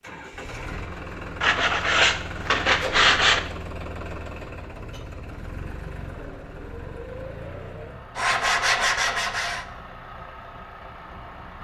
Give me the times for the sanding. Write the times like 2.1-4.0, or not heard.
1.4-3.4, 8.2-9.7.